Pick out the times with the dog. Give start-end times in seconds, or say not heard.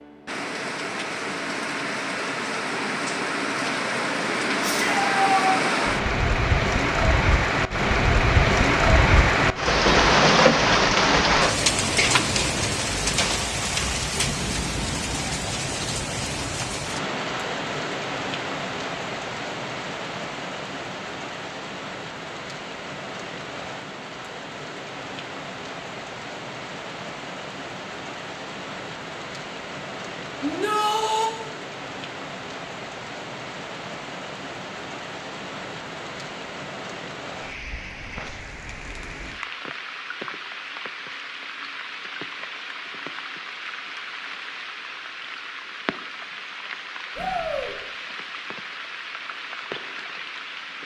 not heard.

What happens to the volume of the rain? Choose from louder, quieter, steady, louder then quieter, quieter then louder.
quieter.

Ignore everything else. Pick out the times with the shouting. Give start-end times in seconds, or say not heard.
4.6-5.5, 30.4-31.3, 47.1-47.8.